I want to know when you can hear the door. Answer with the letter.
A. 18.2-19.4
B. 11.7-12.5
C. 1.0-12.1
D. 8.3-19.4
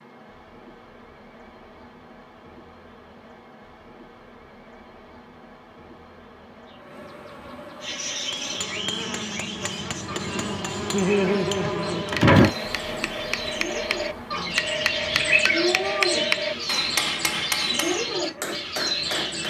B.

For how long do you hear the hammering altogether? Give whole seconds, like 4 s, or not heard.
11 s.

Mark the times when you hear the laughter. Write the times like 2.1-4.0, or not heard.
10.9-12.1.